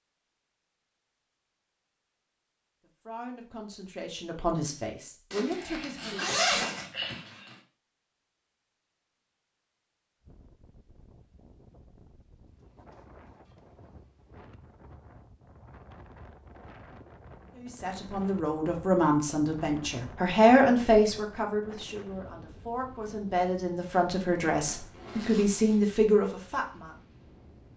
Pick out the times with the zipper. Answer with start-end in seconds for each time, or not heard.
5.3-7.5, 24.6-25.8.